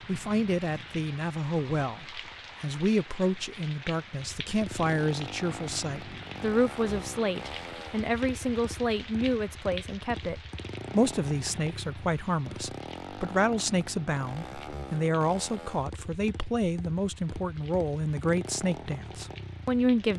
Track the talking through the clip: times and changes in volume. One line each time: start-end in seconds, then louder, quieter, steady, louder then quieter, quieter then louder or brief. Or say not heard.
0.1-20.1 steady.